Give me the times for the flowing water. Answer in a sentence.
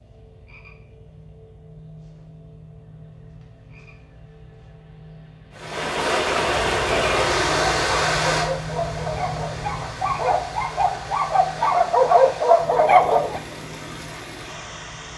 The flowing water can be heard from 5.5 to 15.1 s.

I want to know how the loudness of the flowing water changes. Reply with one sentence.
The loudness of the flowing water goes down.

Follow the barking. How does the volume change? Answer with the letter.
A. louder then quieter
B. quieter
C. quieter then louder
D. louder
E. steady
D.